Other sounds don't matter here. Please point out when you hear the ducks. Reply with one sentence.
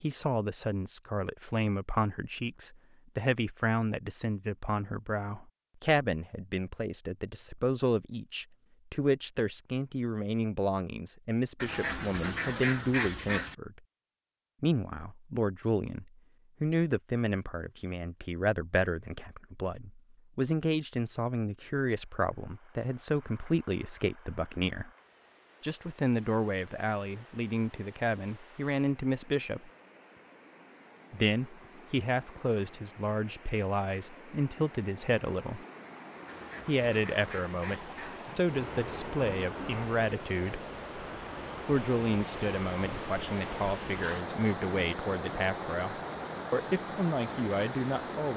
The ducks can be heard from 11.6 to 13.6 s and from 36.2 to 38.2 s.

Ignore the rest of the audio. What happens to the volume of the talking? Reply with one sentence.
The volume of the talking stays about the same.